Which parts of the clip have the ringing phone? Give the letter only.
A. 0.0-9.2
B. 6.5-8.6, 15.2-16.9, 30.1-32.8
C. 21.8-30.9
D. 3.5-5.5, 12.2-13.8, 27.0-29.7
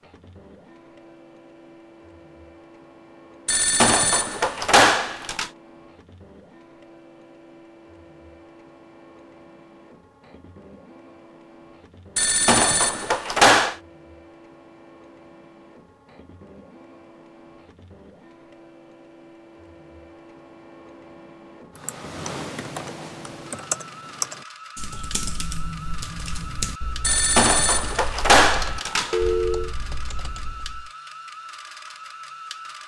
D.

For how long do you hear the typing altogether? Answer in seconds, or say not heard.
9 s.